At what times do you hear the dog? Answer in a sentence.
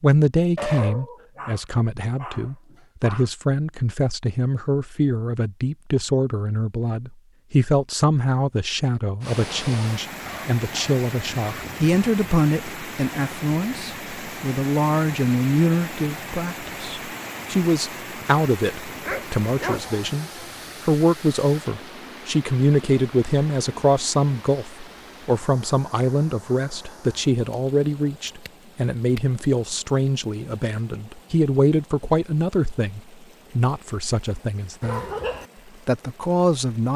The dog can be heard from 0.6 to 3.3 s, from 10.2 to 11.4 s, from 19.1 to 19.9 s and from 34.8 to 35.5 s.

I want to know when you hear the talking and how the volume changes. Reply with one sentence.
You can hear the talking from 0.0 to 35.0 s, at a steady volume; and briefly from 35.9 to 36.9 s.